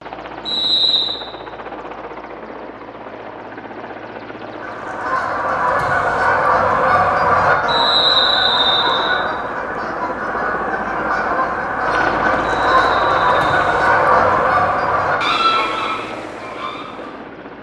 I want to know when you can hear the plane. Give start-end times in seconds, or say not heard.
0.0-17.5.